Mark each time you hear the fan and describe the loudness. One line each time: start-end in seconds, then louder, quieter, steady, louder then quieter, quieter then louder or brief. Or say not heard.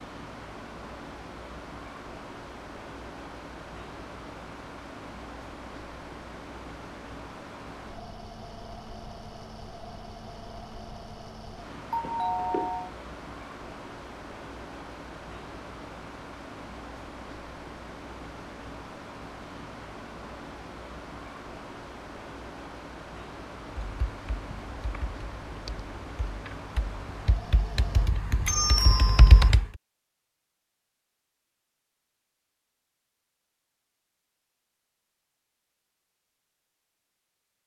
0.0-28.1 steady.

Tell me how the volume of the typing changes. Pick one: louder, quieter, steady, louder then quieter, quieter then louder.
louder.